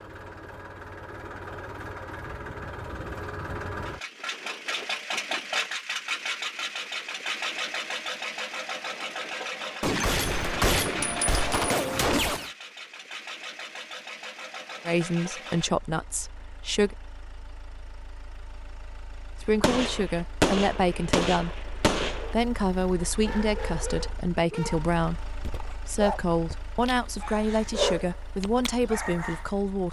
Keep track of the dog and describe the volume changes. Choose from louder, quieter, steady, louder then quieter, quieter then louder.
louder then quieter.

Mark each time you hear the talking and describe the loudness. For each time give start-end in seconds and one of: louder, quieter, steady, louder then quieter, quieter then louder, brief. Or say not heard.
14.8-16.9 brief
19.4-29.8 steady.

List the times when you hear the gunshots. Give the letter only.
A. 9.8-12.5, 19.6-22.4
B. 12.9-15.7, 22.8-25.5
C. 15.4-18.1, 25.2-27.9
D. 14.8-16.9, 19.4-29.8
A.